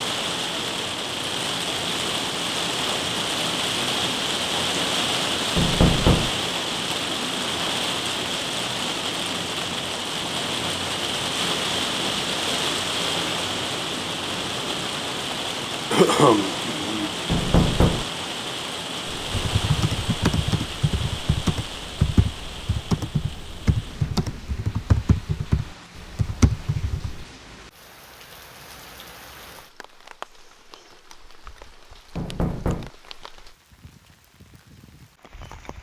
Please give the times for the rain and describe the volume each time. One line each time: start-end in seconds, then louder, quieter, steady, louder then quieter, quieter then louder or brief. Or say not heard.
0.0-35.7 quieter.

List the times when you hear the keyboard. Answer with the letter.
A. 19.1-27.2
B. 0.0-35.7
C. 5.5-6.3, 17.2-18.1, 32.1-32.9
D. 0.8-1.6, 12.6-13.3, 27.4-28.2
A.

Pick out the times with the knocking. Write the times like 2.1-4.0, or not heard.
5.5-6.3, 17.2-18.1, 32.1-32.9.